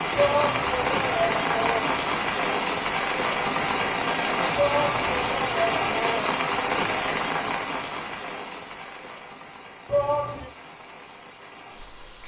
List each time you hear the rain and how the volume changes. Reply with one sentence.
The rain can be heard from 0.0 to 12.2 s, getting quieter.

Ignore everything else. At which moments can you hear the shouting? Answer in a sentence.
The shouting can be heard from 0.1 to 2.0 s, from 4.5 to 6.3 s and from 9.8 to 10.5 s.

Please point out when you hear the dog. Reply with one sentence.
The dog can't be heard in this clip.